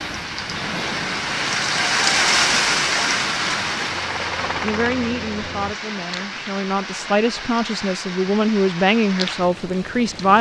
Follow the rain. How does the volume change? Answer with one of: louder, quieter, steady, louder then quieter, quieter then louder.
quieter.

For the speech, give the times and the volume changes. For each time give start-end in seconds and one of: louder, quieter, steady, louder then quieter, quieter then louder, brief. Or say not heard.
4.6-10.3 louder.